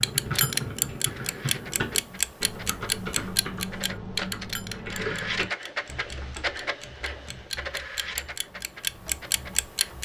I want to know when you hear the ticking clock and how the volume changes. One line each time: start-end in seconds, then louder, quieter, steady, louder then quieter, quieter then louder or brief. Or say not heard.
0.0-10.0 quieter then louder.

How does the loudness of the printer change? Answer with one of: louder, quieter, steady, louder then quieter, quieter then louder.
louder then quieter.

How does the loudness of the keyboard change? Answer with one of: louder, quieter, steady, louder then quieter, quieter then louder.
quieter.